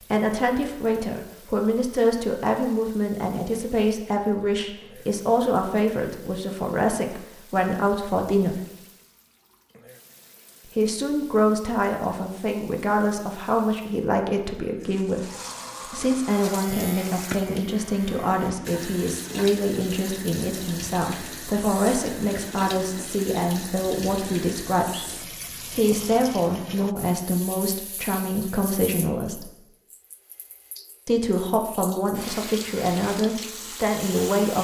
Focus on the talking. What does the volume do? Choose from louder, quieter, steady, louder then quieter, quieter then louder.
steady.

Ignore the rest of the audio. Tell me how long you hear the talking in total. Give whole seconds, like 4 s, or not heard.
31 s.